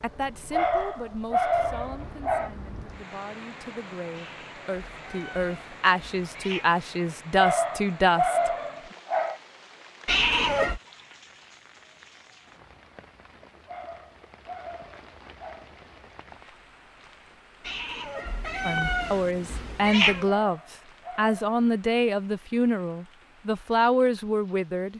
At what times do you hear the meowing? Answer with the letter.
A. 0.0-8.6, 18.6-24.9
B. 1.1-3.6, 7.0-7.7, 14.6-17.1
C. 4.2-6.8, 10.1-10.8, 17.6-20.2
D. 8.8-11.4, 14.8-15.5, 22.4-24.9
C.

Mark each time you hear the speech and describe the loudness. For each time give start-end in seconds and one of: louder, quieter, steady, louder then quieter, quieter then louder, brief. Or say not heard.
0.0-8.6 quieter then louder
18.6-24.9 steady.